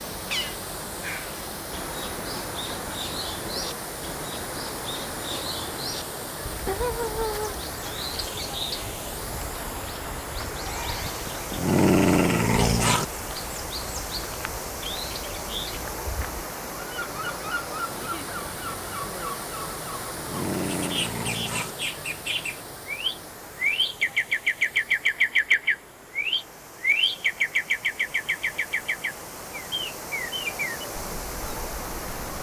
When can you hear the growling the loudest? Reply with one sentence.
The loudest moment of the growling is at 12 seconds.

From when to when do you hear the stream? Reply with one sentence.
You can hear the stream from 0.0 to 32.3 s.